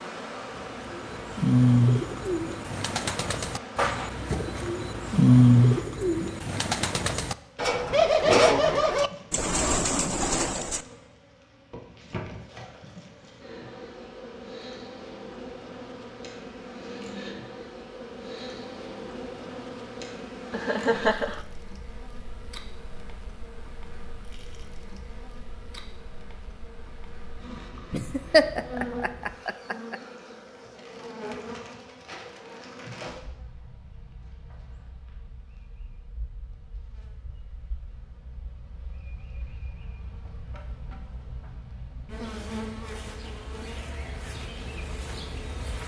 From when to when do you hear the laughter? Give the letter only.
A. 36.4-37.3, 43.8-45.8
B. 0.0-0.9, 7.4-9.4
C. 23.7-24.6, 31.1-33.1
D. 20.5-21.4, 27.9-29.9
D.